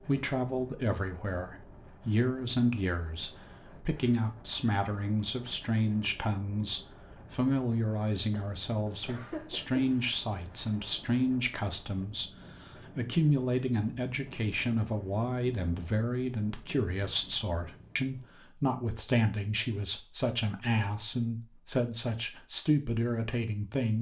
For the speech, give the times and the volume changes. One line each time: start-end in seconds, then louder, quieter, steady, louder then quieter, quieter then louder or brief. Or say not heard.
0.0-23.9 steady.